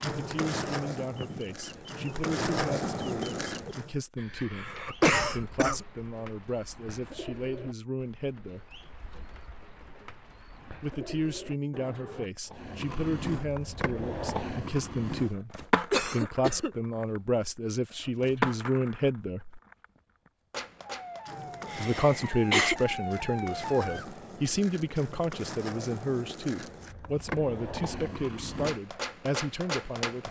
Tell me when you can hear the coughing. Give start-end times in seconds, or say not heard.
4.2-5.8, 15.9-16.7, 21.7-22.8.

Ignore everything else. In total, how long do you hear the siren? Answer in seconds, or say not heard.
3 s.